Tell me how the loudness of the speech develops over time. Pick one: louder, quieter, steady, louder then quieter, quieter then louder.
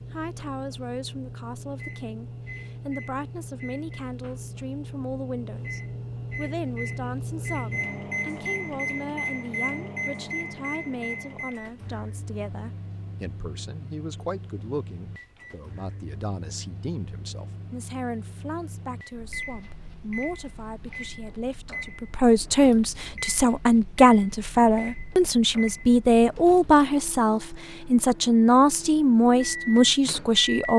louder.